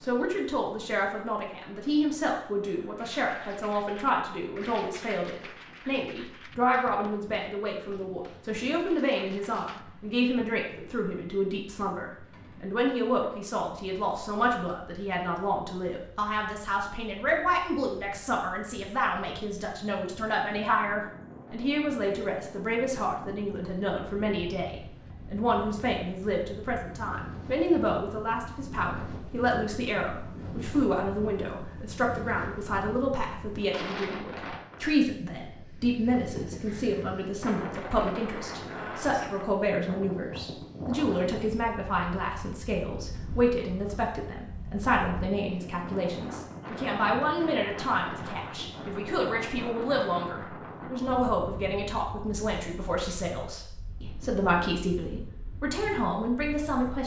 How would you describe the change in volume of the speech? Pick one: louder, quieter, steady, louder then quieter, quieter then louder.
steady.